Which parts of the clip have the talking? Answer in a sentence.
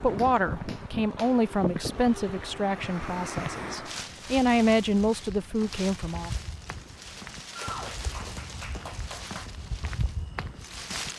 The talking can be heard from 0.0 to 6.3 s.